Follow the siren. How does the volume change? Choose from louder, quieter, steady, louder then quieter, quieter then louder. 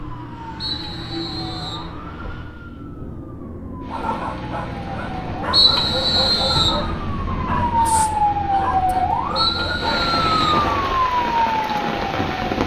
louder.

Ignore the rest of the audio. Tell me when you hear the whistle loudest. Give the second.
6 s.